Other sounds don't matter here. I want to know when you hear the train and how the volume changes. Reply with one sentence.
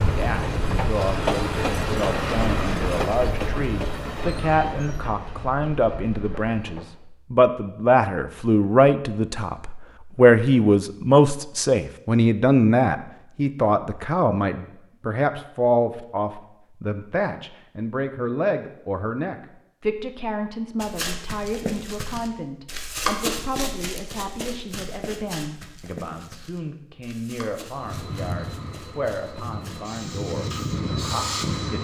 You can hear the train from 0.0 to 7.0 s, getting quieter; and from 27.6 to 31.7 s, getting quieter then louder.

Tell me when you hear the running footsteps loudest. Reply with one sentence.
The loudest moment of the running footsteps is at 23 seconds.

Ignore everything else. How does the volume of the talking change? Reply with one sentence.
The loudness of the talking goes up, then down.